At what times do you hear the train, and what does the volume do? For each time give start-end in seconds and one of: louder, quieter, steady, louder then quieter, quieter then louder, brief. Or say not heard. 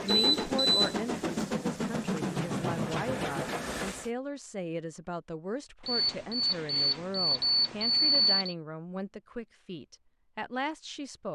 0.0-4.1 steady.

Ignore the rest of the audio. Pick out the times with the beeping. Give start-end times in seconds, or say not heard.
0.1-0.8, 5.8-8.6.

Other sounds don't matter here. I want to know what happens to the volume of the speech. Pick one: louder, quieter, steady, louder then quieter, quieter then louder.
steady.